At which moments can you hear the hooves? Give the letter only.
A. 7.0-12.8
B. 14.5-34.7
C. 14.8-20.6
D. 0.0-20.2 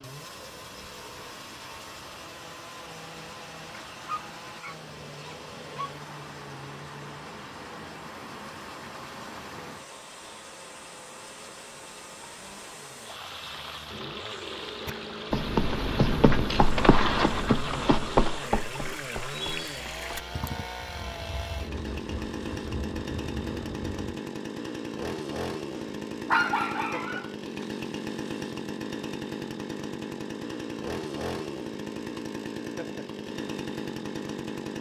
C.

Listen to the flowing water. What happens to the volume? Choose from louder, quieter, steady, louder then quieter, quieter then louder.
louder.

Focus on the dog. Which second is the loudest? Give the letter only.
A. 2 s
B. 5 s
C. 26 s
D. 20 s
C.